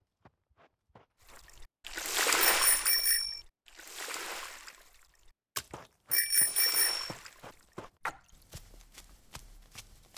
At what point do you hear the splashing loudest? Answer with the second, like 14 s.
2 s.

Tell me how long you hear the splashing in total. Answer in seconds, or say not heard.
7 s.